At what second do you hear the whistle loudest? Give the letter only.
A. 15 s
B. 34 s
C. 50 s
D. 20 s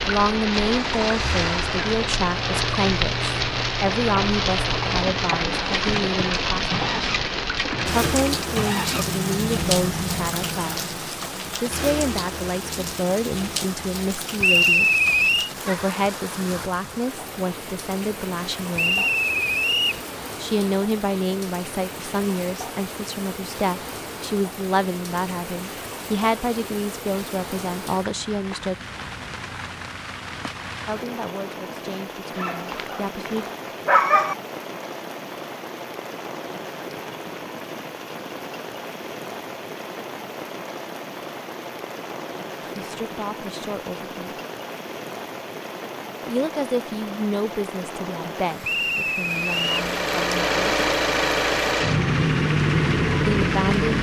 A.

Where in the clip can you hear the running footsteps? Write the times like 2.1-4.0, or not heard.
not heard.